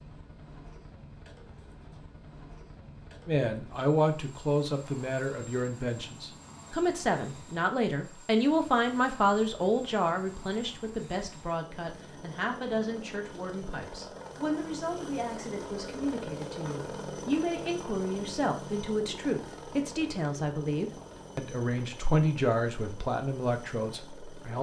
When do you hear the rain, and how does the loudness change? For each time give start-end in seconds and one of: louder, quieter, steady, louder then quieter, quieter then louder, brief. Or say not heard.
not heard.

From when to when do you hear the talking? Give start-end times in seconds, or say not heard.
3.2-24.5.